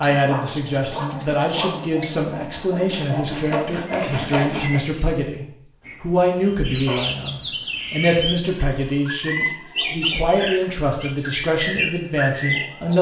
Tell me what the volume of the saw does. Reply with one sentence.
The loudness of the saw goes up.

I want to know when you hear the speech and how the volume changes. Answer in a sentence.
You can hear the speech from 0.0 to 12.9 s, at a steady volume.